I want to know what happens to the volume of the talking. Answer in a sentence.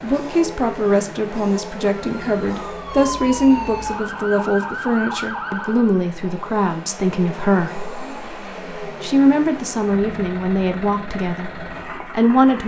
The loudness of the talking stays about the same.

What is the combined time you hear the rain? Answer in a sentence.
The rain can't be heard in this clip.